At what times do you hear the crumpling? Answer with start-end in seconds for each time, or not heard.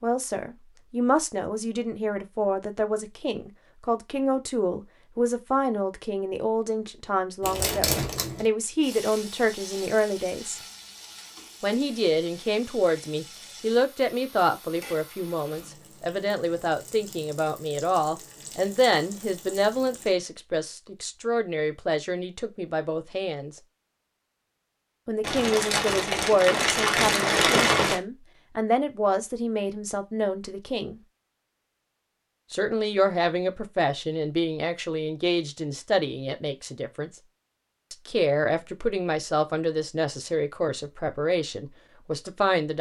7.4-8.4, 25.2-28.0.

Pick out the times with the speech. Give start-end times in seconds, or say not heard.
0.0-10.6, 11.6-23.6, 25.1-31.0, 32.5-37.1, 37.9-42.7.